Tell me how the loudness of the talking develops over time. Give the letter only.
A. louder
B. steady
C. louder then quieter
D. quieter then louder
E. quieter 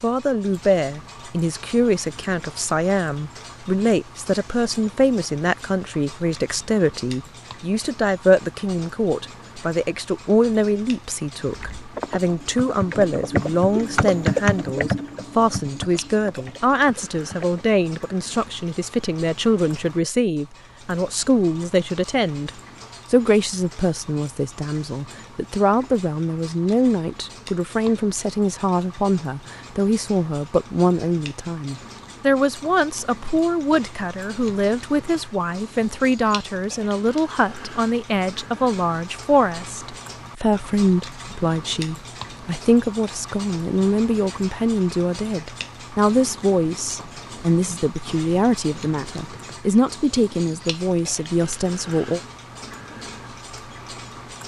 B.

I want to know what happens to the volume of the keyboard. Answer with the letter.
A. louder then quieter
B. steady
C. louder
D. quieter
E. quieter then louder
A.